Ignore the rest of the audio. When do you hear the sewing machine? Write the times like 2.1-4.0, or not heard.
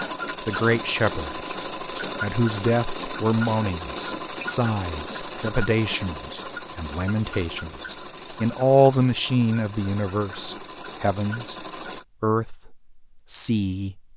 0.0-12.1.